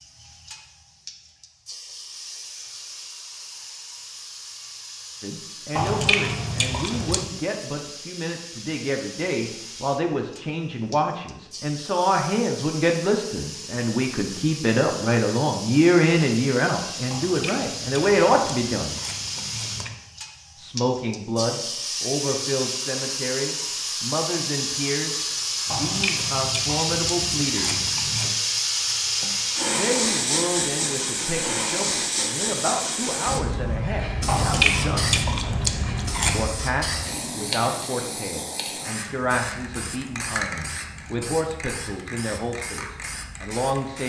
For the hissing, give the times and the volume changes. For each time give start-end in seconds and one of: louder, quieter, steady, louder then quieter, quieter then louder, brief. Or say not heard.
0.0-44.0 louder then quieter.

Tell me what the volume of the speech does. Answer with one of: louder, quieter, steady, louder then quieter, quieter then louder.
louder then quieter.